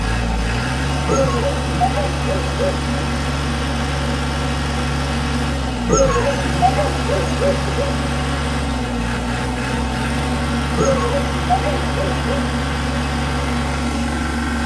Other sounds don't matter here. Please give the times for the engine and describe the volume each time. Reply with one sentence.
The engine can be heard from 0.0 to 14.6 s, at a steady volume.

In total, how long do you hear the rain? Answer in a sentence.
You can't hear the rain here.